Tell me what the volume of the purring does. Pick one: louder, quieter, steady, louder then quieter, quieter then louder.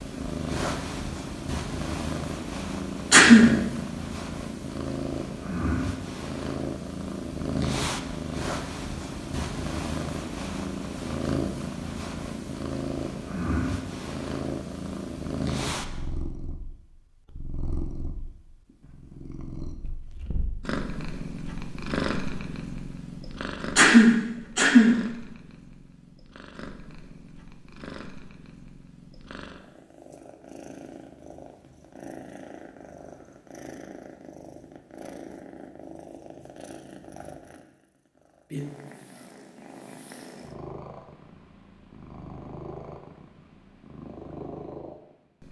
quieter.